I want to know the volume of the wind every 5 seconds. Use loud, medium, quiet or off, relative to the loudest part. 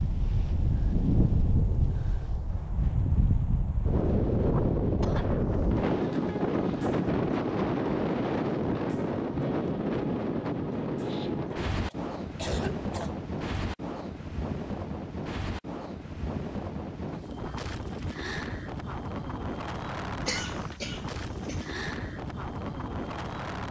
loud, loud, medium, medium, medium.